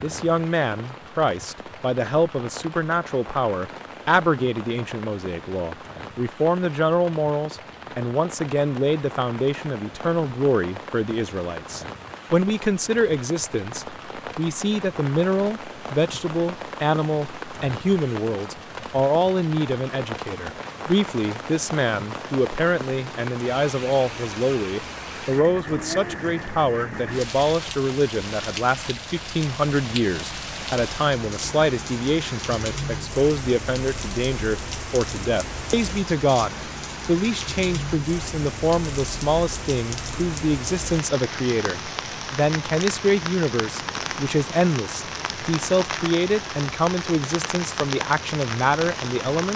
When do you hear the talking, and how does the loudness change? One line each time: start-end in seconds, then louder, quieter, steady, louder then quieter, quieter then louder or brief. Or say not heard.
0.0-49.5 steady.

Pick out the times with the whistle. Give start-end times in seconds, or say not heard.
not heard.